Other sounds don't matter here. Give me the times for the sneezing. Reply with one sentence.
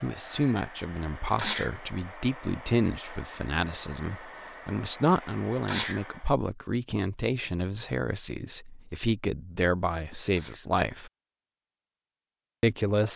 You can hear the sneezing from 1.2 to 1.7 s, from 5.5 to 6.0 s and from 10.2 to 10.7 s.